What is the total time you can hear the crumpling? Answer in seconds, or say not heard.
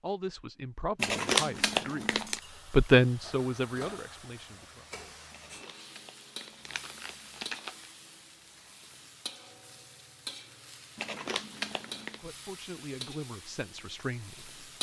5 s.